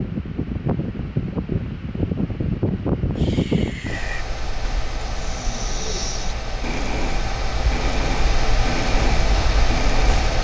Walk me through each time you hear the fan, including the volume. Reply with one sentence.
You can hear the fan from 0.0 to 10.3 s, getting quieter then louder.